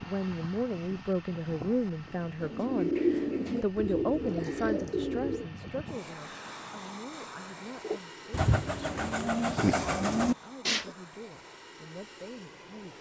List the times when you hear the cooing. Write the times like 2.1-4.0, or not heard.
2.4-5.5, 7.8-10.9.